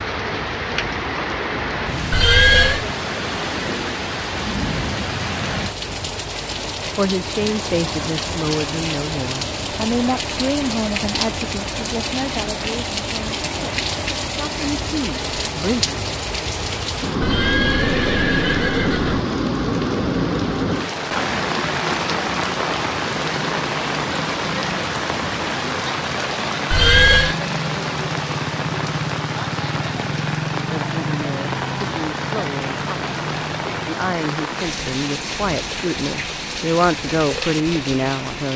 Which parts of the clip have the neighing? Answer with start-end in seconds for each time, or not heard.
2.1-2.9, 17.2-19.2, 26.7-27.4.